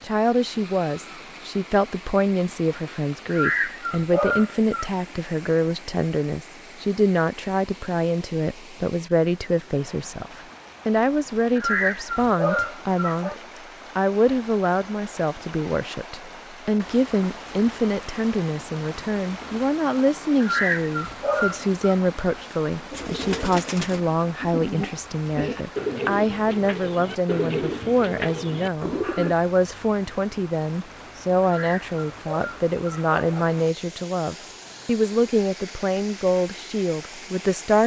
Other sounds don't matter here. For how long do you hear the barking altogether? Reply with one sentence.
You can hear the barking for 7 seconds altogether.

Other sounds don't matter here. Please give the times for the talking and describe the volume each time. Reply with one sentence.
You can hear the talking from 0.0 to 37.8 s, at a steady volume.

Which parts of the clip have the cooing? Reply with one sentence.
The cooing can be heard from 22.9 to 29.4 s.